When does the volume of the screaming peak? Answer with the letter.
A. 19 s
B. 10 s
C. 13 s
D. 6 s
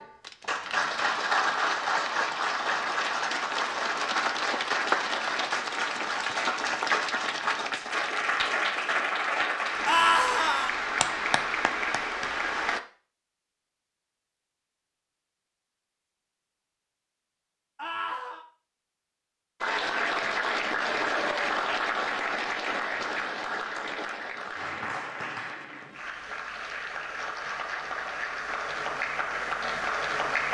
B.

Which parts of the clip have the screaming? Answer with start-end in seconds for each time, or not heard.
9.8-10.7, 17.8-18.4.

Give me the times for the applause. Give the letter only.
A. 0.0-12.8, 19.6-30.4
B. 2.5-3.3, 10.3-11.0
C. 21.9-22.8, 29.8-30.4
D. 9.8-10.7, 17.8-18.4
A.